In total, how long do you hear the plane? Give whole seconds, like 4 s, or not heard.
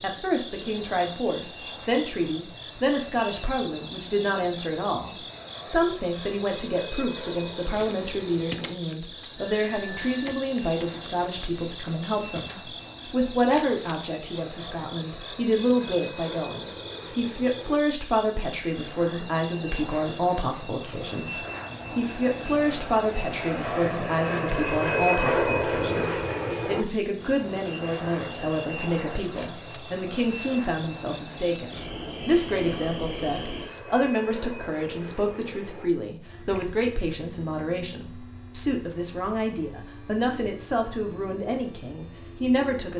43 s.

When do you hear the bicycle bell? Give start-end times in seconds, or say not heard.
9.3-10.3.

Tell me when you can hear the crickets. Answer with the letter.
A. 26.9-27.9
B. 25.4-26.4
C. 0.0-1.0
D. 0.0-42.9
D.